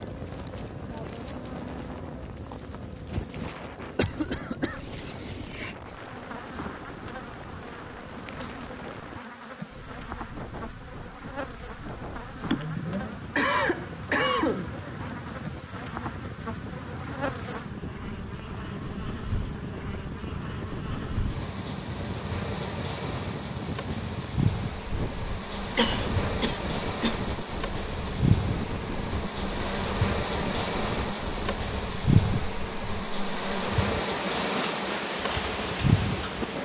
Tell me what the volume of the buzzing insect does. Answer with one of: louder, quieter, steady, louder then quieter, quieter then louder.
louder.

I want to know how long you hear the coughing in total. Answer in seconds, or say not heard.
5 s.